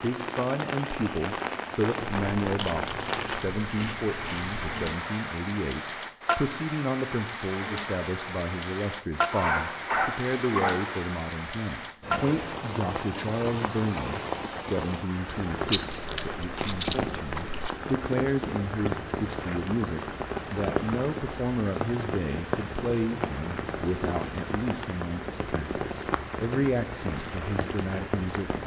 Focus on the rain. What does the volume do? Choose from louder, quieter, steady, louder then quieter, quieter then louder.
steady.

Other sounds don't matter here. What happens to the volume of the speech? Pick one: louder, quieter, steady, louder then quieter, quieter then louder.
steady.